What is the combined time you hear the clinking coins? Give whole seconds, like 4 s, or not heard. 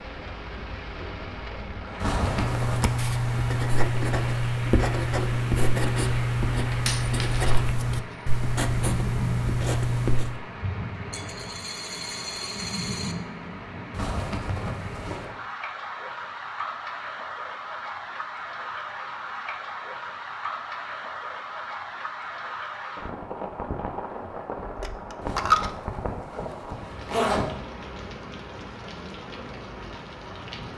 4 s.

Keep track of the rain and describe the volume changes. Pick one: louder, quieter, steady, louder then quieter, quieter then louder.
steady.